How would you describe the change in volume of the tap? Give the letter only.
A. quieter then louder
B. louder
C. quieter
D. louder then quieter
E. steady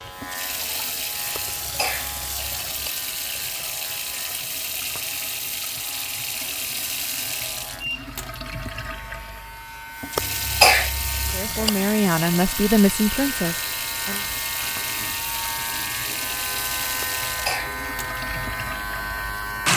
E.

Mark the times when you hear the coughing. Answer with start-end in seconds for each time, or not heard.
1.4-2.9, 10.2-11.7, 17.0-17.8.